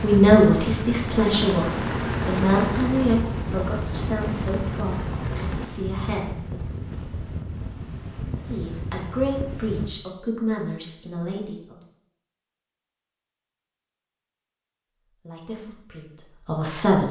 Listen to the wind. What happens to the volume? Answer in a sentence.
The loudness of the wind goes down.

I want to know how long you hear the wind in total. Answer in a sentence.
The wind can be heard for 10 seconds in total.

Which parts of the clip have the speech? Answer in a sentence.
The speech can be heard from 0.0 to 6.6 s, from 8.2 to 11.8 s and from 15.2 to 17.0 s.